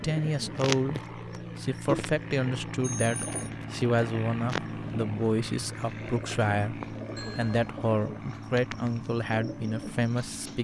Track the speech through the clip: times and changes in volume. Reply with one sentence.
You can hear the speech from 0.0 to 10.5 s, at a steady volume.